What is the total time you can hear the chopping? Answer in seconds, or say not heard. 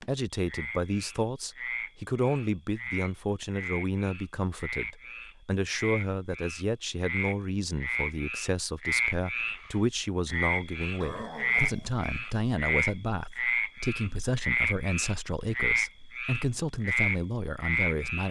not heard.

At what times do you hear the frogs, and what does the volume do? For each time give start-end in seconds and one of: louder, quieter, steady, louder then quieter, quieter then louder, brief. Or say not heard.
0.0-18.2 louder.